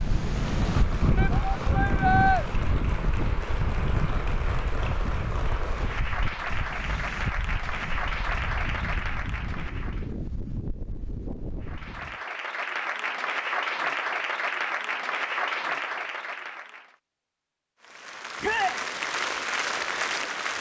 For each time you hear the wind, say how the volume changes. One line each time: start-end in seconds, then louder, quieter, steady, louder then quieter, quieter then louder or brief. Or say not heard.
0.0-12.2 quieter.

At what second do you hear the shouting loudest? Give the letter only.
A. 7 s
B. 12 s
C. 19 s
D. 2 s
D.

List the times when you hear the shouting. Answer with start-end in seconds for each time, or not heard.
1.1-2.5, 18.4-18.8.